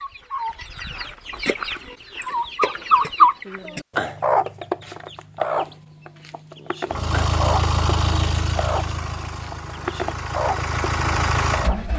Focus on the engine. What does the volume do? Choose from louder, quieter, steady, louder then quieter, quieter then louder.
quieter then louder.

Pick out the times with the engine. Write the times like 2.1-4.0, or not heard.
6.9-11.9.